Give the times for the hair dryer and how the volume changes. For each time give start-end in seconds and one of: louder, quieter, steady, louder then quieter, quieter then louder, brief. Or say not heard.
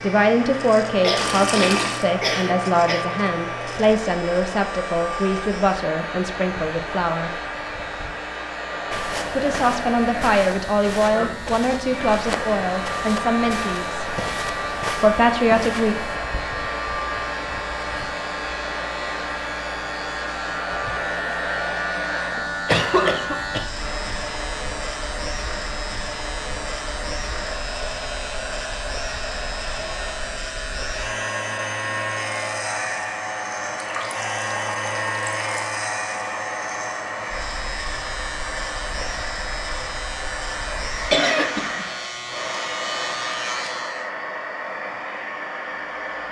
0.0-46.2 steady.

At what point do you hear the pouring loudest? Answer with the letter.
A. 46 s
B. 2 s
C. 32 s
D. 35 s
B.